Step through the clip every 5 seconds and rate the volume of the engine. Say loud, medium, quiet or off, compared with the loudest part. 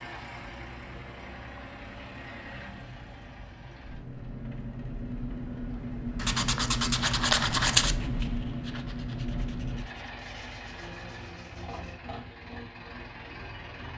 medium, loud, medium.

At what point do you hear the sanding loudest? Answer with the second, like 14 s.
8 s.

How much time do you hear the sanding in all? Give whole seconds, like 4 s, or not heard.
6 s.